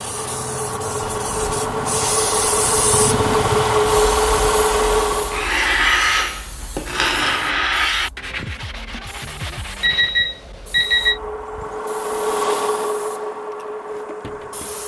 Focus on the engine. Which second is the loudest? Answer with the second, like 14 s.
4 s.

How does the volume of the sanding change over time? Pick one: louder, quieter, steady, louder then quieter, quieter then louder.
quieter.